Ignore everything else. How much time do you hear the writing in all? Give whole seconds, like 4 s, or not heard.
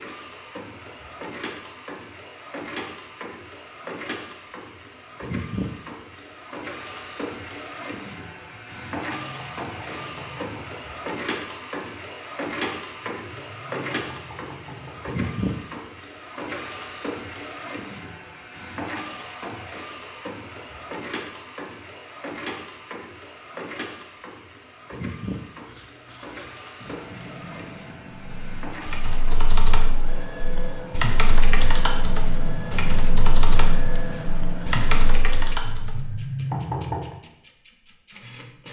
10 s.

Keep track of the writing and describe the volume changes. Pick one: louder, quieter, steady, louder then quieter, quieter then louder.
louder.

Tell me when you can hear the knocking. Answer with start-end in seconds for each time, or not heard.
8.5-10.8, 13.2-15.3, 35.6-37.1.